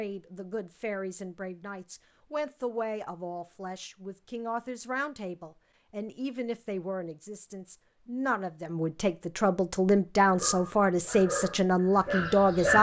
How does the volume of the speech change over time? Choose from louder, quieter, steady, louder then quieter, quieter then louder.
louder.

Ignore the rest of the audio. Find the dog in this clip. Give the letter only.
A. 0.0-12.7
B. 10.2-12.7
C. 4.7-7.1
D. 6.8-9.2
B.